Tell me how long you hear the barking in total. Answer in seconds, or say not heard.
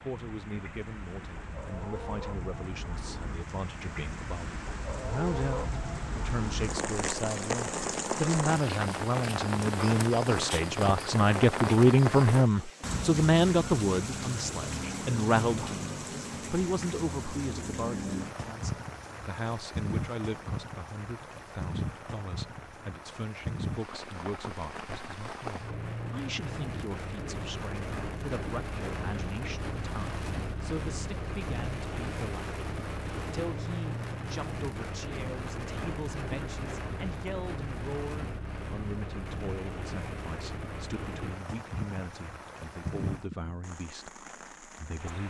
not heard.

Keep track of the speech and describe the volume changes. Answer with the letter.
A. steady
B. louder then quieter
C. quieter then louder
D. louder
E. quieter
B.